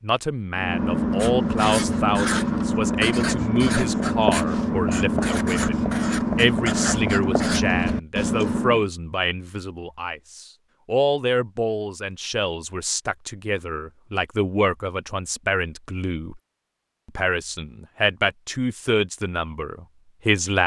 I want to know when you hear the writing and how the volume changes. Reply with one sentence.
The writing can be heard from 0.6 to 8.8 s, at a steady volume.